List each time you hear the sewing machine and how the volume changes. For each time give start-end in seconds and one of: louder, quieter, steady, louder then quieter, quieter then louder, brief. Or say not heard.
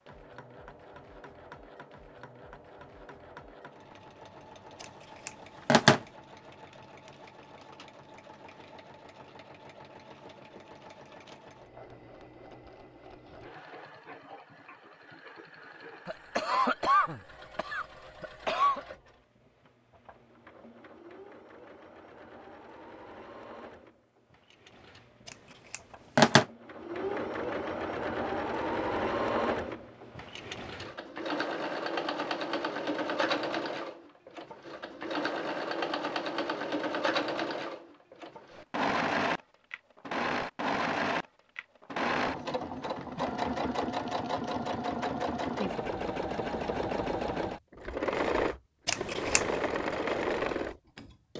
0.0-51.3 louder.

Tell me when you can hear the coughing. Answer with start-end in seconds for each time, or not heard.
16.1-18.8.